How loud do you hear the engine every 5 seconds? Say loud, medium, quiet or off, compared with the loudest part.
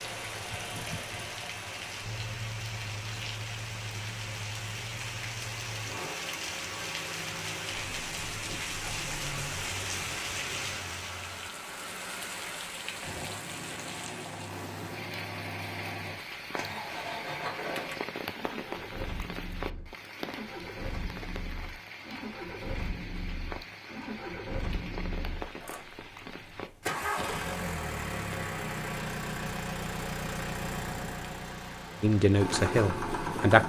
medium, medium, medium, medium, medium, loud, loud.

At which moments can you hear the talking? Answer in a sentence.
You can hear the talking from 32.0 to 33.6 s.